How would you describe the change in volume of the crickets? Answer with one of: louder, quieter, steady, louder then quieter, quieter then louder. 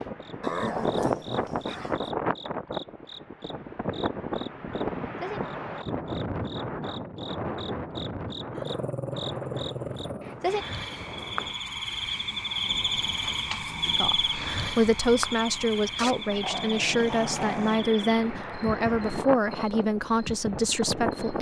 louder then quieter.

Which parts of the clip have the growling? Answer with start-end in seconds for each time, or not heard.
0.4-2.1, 8.5-10.3, 15.9-17.8.